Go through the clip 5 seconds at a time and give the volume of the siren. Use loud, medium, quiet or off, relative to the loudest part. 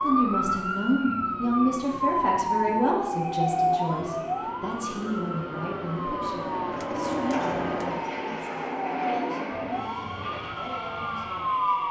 loud, medium, loud.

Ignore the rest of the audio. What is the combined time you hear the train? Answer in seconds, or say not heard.
12 s.